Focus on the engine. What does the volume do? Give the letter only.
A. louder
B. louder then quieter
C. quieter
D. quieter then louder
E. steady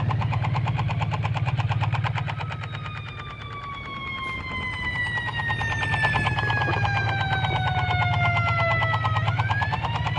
D.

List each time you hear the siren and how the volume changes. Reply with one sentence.
The siren can be heard from 0.0 to 10.1 s, getting louder.